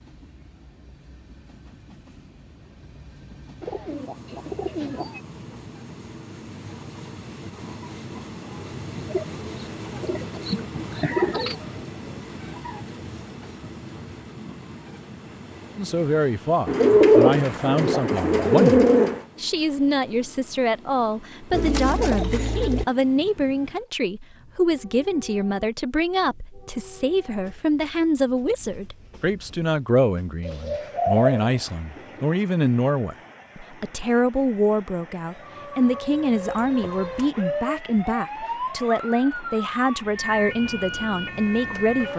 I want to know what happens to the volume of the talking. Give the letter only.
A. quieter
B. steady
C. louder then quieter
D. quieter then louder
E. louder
B.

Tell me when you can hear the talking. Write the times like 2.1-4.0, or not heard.
15.8-42.1.